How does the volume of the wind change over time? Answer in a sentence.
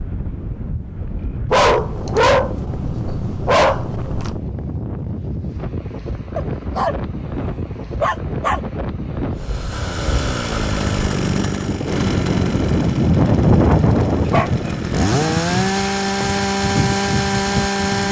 The volume of the wind goes up, then down.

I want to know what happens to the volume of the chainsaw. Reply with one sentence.
The loudness of the chainsaw goes down, then up.